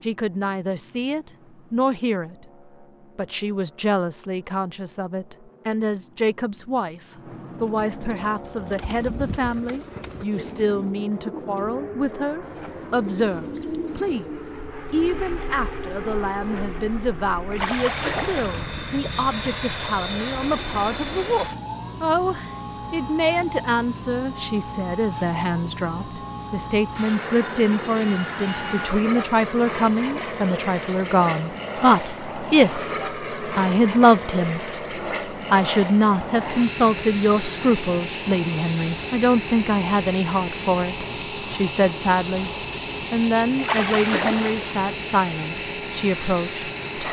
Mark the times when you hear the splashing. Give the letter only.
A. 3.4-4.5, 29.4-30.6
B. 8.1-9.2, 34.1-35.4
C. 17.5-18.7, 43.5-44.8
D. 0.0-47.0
C.